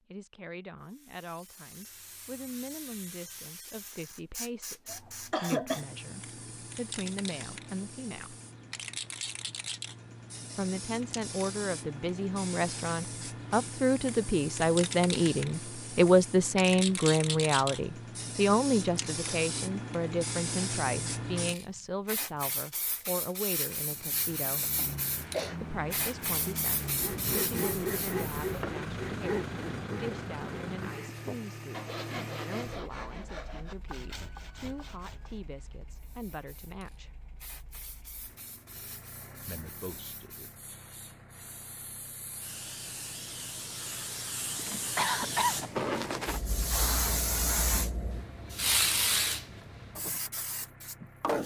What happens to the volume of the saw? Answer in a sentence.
The volume of the saw goes down.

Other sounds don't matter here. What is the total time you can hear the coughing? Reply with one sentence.
You can hear the coughing for 3 seconds altogether.